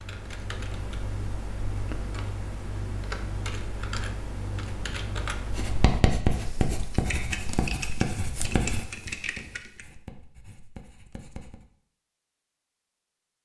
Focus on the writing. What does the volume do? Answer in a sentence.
The volume of the writing goes down.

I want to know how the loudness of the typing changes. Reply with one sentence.
The volume of the typing stays about the same.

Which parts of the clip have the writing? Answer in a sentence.
The writing can be heard from 5.5 to 11.7 s.